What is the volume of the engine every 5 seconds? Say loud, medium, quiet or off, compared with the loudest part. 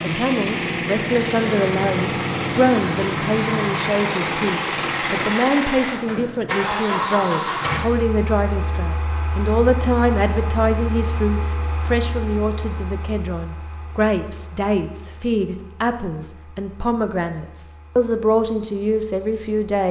loud, loud, quiet, quiet.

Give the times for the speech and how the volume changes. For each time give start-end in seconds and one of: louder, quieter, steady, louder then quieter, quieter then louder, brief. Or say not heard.
0.0-19.8 steady.